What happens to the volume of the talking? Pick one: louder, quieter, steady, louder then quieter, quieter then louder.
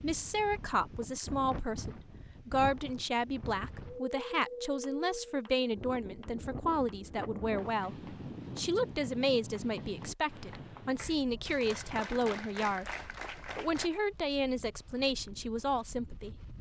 steady.